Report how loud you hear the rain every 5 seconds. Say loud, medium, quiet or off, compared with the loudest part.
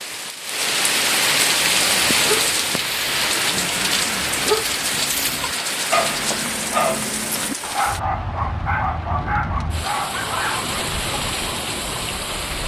loud, medium, medium.